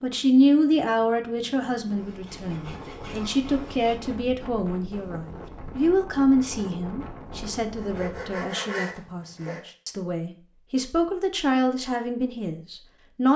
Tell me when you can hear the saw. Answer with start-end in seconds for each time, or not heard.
1.9-4.0, 7.8-9.7.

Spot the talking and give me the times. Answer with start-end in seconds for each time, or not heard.
0.0-13.3.